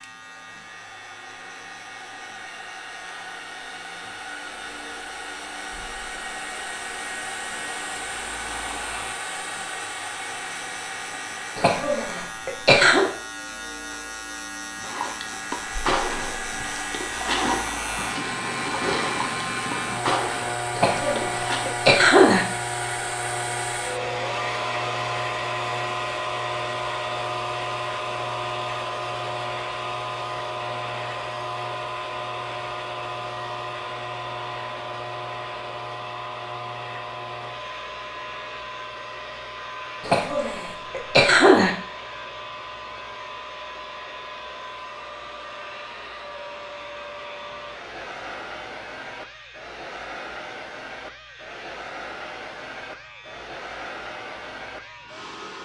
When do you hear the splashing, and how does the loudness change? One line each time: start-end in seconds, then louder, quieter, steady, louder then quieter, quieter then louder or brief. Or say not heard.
14.8-21.7 quieter then louder.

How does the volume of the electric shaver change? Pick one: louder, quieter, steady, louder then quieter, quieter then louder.
louder then quieter.